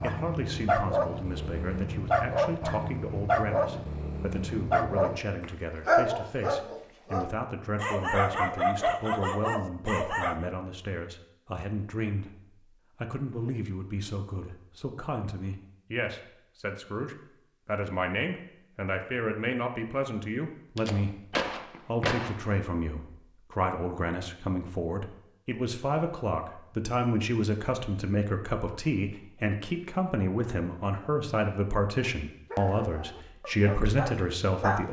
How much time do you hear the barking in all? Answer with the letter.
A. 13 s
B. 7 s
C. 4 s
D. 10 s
A.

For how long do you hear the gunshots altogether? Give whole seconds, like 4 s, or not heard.
2 s.